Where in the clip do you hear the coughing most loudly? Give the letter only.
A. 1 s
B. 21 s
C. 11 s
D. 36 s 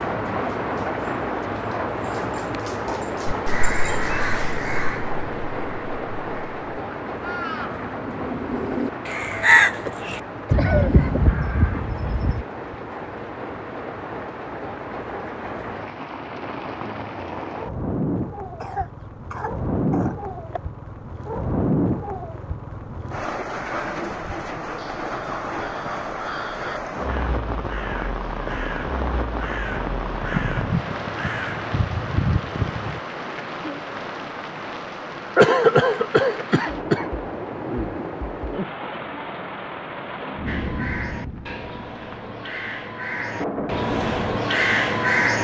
D.